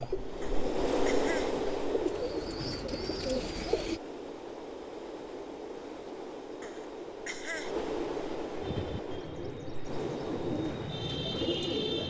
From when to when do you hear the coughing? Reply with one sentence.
The coughing can be heard from 0.4 to 1.6 s and from 6.6 to 7.8 s.